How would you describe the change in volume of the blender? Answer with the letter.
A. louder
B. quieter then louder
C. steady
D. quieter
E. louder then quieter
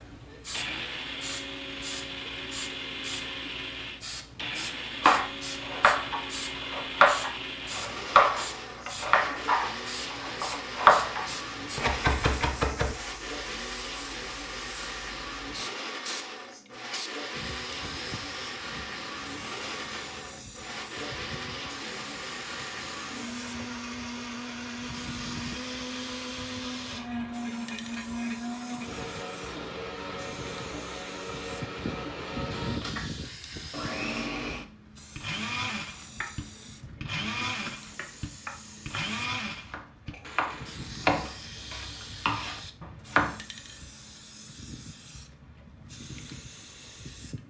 C.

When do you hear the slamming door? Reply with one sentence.
The slamming door can't be heard in this clip.